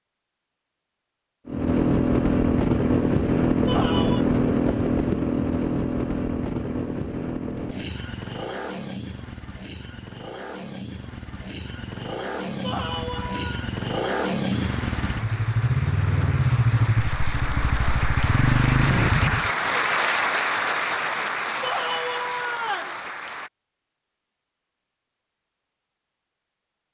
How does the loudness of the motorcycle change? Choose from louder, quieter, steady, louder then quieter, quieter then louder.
quieter then louder.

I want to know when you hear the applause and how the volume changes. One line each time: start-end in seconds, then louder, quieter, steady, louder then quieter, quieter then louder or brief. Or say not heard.
14.5-23.5 louder then quieter.